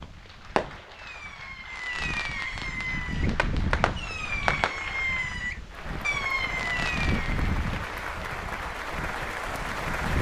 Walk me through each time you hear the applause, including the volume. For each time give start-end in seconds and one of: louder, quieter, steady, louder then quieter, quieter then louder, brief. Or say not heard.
0.0-10.1 louder.